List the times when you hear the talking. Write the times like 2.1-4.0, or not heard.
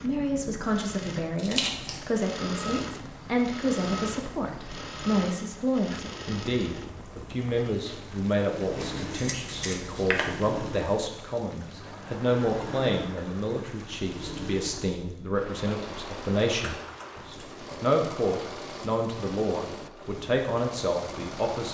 0.0-21.6.